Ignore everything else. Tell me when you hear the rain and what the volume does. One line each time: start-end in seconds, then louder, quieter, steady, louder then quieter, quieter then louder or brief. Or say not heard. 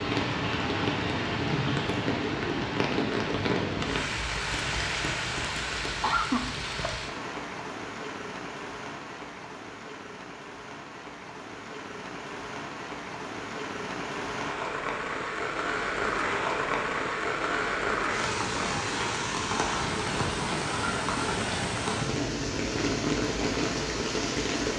0.0-24.7 quieter then louder.